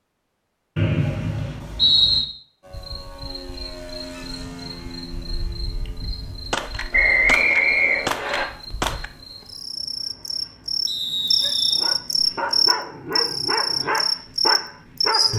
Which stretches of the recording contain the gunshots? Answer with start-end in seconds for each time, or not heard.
6.5-9.1.